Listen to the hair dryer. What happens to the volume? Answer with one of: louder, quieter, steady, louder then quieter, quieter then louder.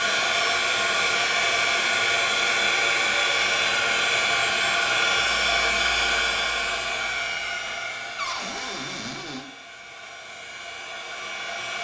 quieter.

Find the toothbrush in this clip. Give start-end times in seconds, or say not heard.
not heard.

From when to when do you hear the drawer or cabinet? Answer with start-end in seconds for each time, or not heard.
8.2-9.4.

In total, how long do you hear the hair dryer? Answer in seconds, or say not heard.
12 s.